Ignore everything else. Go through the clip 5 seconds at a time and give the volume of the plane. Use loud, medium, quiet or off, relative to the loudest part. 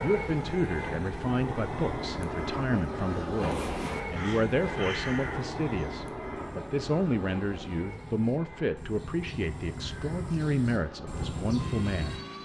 loud, medium, medium.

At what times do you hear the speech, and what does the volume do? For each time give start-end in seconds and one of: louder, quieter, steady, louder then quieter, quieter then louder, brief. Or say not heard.
0.0-12.4 steady.